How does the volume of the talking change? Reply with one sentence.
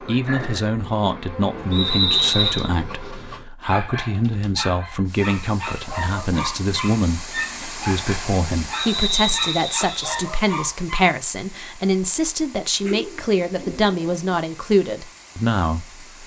The loudness of the talking stays about the same.